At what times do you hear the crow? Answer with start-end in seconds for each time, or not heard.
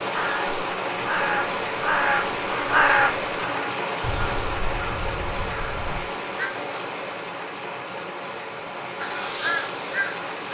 0.0-6.5, 8.9-10.3.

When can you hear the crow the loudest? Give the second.
3 s.